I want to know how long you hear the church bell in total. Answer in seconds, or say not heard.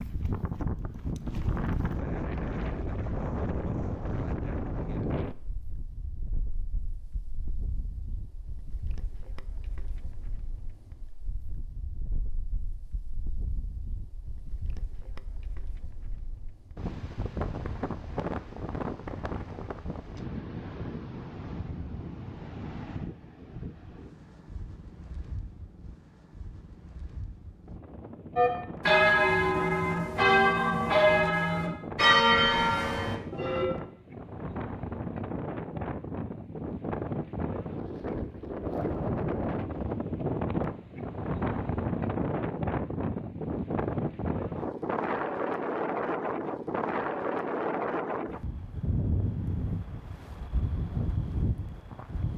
5 s.